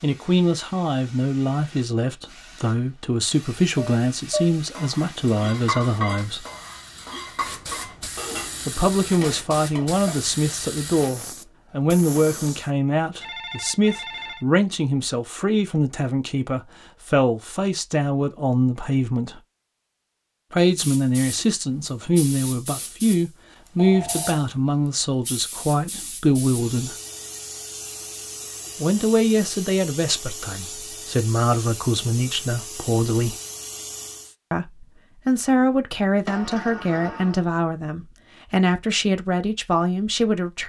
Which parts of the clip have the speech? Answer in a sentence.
The speech can be heard from 0.0 to 6.5 s, from 8.7 to 19.4 s, from 20.5 to 26.9 s, from 28.8 to 33.4 s and from 34.5 to 40.6 s.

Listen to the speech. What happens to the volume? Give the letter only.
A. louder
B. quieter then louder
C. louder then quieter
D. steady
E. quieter
D.